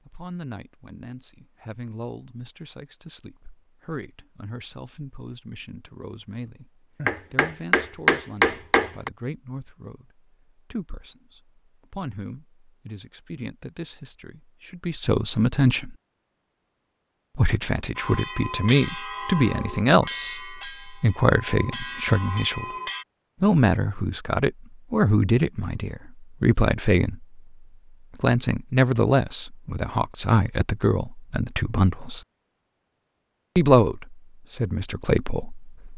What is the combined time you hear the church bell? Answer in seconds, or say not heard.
5 s.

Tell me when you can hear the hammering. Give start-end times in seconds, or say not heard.
7.0-9.1.